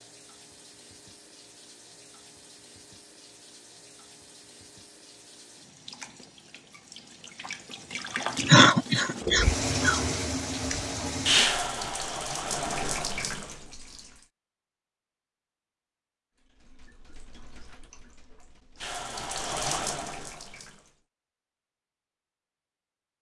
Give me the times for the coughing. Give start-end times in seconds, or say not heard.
8.4-10.0.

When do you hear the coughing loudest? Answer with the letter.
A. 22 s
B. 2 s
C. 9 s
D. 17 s
C.